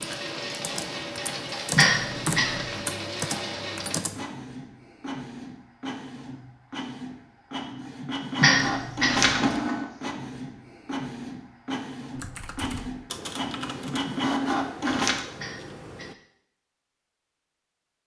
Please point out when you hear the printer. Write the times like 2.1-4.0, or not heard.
0.0-15.2.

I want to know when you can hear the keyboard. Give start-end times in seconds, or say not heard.
0.0-4.2, 12.2-16.1.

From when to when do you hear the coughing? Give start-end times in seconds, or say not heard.
1.8-2.7, 8.4-9.3, 15.3-16.1.